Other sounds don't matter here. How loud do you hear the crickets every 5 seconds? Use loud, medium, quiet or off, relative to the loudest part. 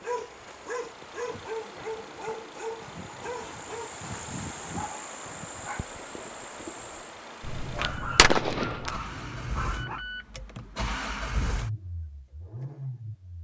loud, loud, off.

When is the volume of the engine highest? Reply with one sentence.
The volume of the engine peaks at 11 seconds.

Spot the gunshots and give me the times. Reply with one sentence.
You can hear the gunshots from 7.4 to 9.0 s.